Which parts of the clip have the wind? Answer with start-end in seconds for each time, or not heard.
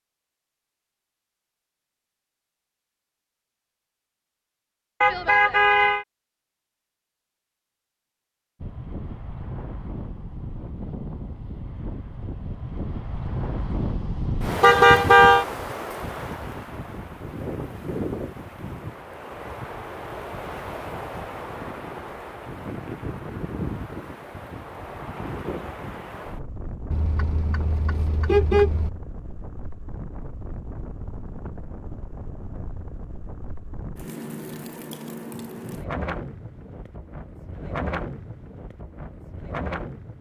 8.6-40.1.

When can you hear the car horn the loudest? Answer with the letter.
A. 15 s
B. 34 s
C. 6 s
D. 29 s
A.